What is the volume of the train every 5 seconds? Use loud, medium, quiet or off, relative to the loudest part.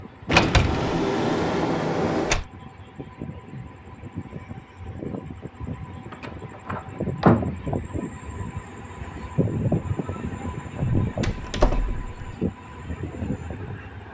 medium, loud, loud.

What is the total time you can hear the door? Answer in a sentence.
You can hear the door for 5 seconds altogether.